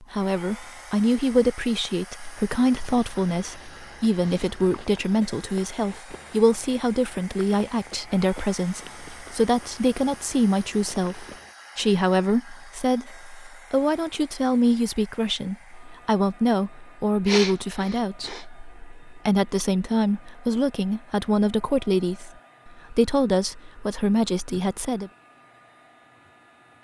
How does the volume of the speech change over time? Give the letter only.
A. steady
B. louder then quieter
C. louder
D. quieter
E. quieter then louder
A.